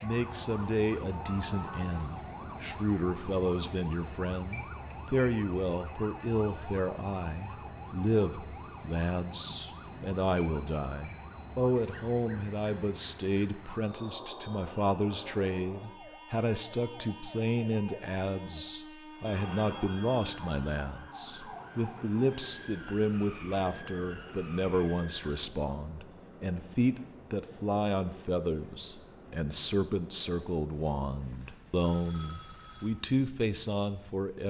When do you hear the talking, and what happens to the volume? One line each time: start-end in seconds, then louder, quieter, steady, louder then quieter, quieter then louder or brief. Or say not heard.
0.0-34.4 steady.